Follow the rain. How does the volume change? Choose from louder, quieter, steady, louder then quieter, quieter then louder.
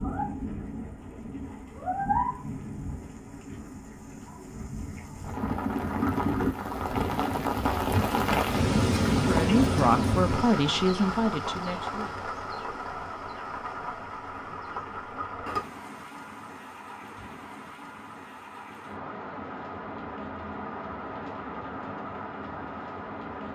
louder then quieter.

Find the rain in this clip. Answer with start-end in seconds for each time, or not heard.
0.0-23.5.